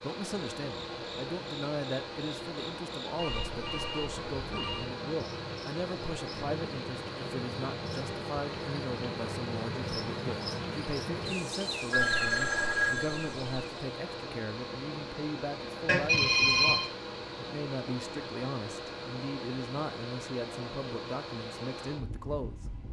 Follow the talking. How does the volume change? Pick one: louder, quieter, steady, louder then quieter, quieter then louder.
steady.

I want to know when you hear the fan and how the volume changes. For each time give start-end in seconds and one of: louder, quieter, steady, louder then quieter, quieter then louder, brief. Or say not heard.
0.0-22.8 steady.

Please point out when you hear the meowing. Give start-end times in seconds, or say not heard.
not heard.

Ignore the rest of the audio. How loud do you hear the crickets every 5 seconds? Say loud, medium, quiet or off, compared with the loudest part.
medium, loud, loud, off, off.